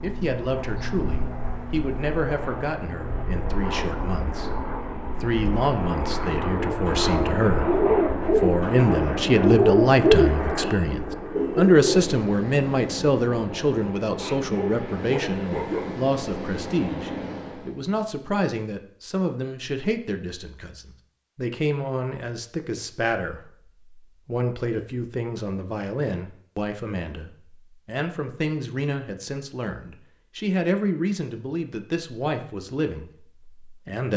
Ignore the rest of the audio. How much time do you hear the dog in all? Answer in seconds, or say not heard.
2 s.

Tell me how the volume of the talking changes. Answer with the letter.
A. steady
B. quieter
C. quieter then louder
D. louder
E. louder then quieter
E.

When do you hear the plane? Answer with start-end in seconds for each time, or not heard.
0.0-17.8.